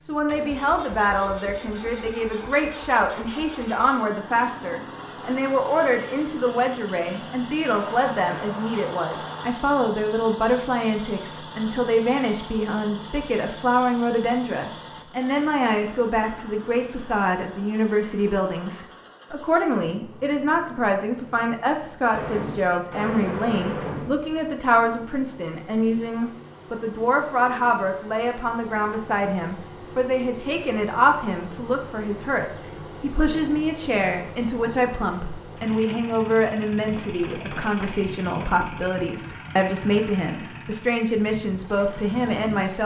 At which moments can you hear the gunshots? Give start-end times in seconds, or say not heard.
7.7-9.5, 22.1-24.1, 36.9-38.7.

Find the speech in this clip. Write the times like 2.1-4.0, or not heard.
0.1-42.8.